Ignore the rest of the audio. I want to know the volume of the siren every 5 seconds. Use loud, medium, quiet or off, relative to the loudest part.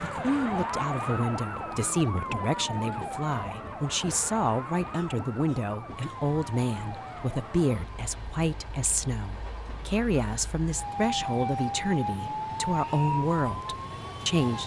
loud, medium, loud.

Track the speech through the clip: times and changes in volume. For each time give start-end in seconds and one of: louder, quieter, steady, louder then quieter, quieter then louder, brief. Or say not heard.
0.0-14.6 steady.